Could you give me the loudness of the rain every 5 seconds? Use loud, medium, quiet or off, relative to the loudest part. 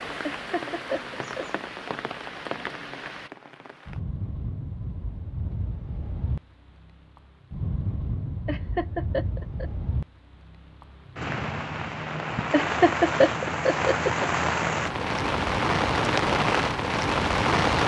quiet, quiet, medium, loud.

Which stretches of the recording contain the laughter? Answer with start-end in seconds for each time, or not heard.
0.2-1.4, 8.4-9.7, 12.5-14.2.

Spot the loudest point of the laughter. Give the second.
13 s.